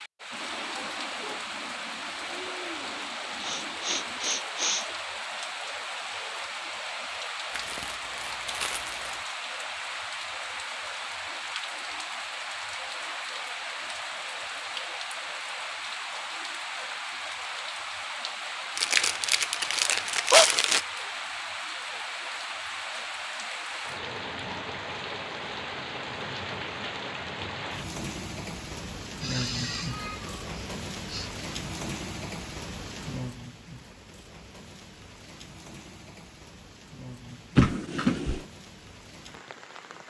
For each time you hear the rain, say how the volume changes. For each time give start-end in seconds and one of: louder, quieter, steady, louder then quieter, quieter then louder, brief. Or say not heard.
0.0-40.0 quieter.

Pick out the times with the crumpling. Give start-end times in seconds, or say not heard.
7.5-9.2, 18.8-20.9, 37.5-38.5.